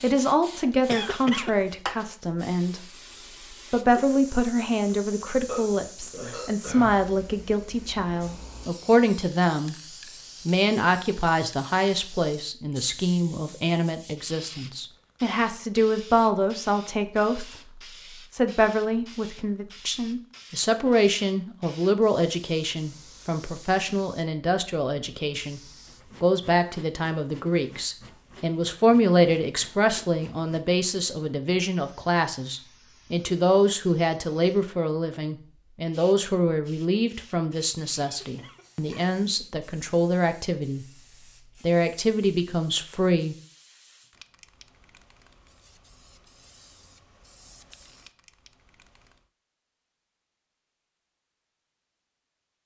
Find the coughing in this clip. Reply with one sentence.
You can hear the coughing from 0.8 to 1.6 s and from 38.0 to 38.6 s.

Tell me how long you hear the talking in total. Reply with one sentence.
The talking can be heard for 42 seconds in total.